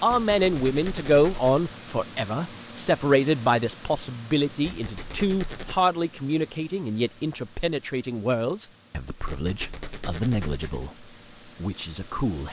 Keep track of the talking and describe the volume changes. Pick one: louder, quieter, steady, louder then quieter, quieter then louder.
quieter.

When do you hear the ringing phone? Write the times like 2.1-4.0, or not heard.
not heard.